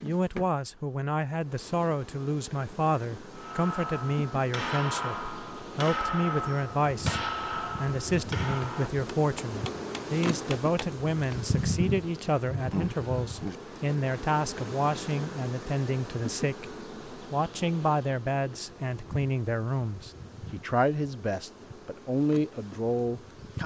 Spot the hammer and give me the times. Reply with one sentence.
You can hear the hammer from 3.4 to 11.4 s.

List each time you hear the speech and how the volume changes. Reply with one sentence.
The speech can be heard from 0.0 to 23.6 s, at a steady volume.